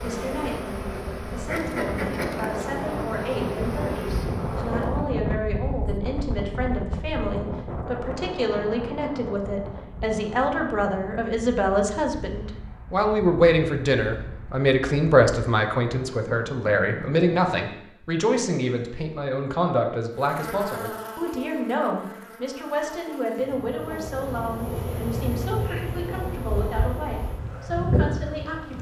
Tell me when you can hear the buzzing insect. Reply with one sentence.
The buzzing insect can be heard from 0.0 to 5.0 s and from 20.1 to 28.7 s.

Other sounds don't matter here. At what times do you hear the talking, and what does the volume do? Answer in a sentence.
You can hear the talking from 0.0 to 28.7 s, getting louder then quieter.